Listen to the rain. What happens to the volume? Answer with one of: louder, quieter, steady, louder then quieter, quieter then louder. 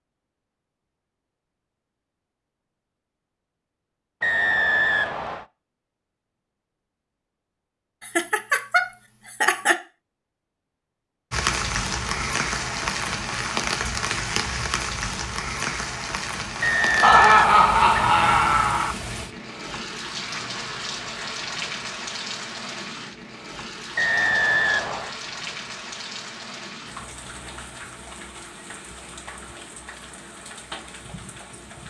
quieter.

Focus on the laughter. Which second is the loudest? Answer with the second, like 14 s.
17 s.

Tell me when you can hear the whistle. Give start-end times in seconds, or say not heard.
4.2-5.5, 16.6-18.2, 23.9-25.1.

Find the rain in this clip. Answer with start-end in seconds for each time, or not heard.
11.3-31.8.